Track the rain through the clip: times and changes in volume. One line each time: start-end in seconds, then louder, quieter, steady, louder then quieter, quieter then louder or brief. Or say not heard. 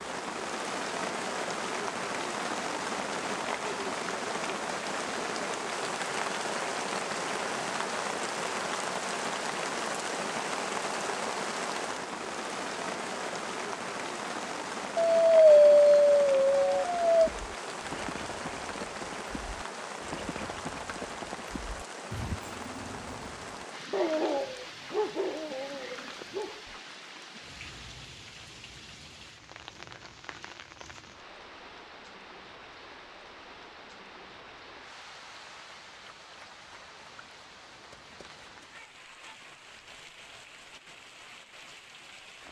0.0-42.4 quieter.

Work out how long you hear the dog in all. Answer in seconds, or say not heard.
5 s.